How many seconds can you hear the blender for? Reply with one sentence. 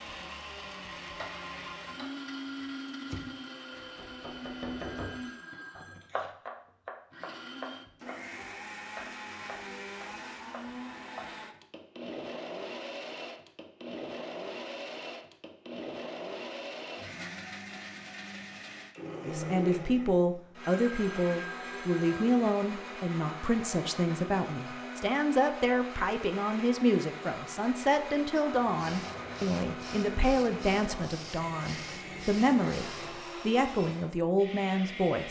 The blender can be heard for 35 seconds in total.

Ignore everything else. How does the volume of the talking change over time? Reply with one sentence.
The volume of the talking stays about the same.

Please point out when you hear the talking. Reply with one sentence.
You can hear the talking from 19.2 to 35.2 s.